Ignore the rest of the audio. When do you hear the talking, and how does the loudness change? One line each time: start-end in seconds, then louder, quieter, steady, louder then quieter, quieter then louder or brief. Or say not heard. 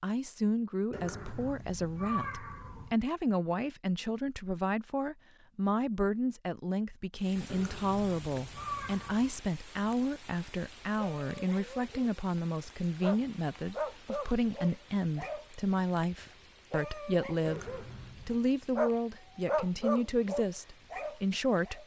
0.0-21.8 steady.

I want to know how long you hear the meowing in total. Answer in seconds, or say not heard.
5 s.